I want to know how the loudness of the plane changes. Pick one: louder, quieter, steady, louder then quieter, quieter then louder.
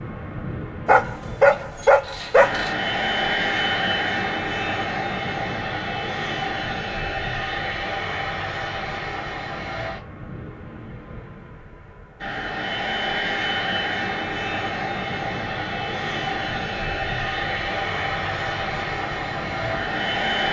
quieter then louder.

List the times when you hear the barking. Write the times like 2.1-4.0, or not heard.
0.8-2.8.